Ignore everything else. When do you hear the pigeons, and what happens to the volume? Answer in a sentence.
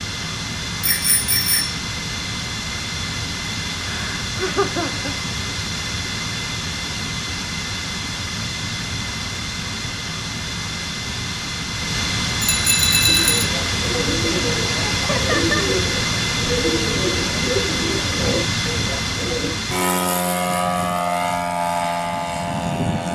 You can hear the pigeons from 13.1 to 19.6 s, at a steady volume.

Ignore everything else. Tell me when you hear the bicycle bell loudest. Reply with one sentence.
The volume of the bicycle bell peaks at 13 seconds.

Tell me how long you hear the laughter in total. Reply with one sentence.
You can hear the laughter for 2 seconds altogether.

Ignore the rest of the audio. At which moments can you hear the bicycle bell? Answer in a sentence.
You can hear the bicycle bell from 0.8 to 1.8 s and from 12.4 to 13.5 s.